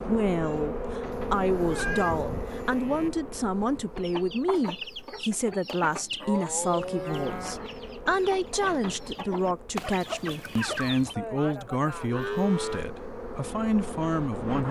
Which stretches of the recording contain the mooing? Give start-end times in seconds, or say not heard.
1.1-3.1, 5.8-7.6, 11.2-12.8.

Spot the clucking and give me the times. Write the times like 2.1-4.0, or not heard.
4.0-11.2.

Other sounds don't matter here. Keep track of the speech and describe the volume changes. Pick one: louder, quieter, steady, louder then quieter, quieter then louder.
steady.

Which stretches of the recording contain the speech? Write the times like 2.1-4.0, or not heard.
0.0-14.6.